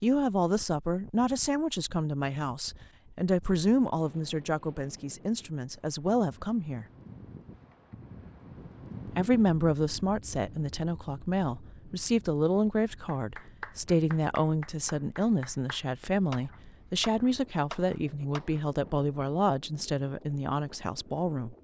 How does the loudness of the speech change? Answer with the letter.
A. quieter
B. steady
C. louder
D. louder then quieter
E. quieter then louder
B.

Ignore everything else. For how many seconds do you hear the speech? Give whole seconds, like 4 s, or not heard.
19 s.